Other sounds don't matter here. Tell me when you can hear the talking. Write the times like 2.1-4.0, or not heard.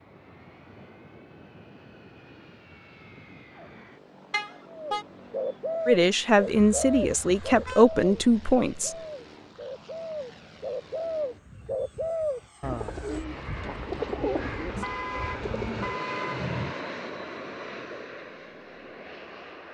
5.8-8.9.